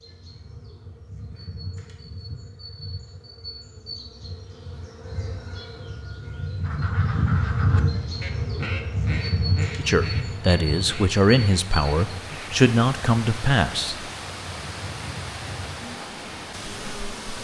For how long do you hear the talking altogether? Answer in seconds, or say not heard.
4 s.